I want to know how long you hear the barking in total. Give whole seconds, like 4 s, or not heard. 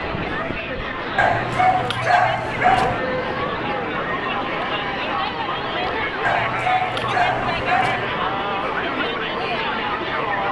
4 s.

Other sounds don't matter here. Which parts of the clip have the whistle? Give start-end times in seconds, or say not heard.
not heard.